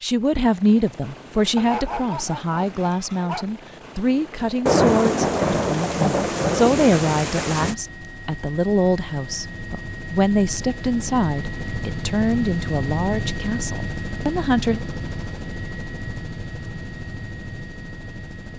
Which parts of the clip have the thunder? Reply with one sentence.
You can hear the thunder from 4.7 to 7.8 s.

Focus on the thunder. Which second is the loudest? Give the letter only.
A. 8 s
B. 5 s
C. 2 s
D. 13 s
B.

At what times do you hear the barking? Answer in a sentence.
You can hear the barking from 1.6 to 3.5 s.